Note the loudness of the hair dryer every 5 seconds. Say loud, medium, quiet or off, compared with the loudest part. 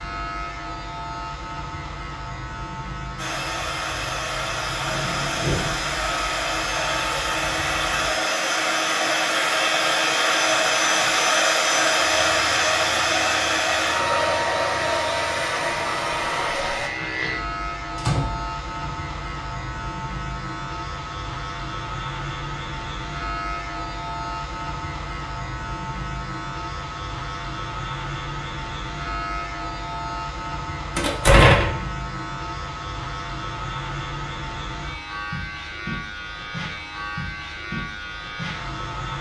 medium, loud, loud, medium, off, off, off, off.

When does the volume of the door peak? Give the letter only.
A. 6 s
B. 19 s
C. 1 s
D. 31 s
D.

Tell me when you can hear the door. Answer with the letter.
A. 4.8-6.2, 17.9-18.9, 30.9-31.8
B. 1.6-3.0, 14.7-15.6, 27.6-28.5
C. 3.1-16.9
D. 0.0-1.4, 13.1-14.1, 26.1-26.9
A.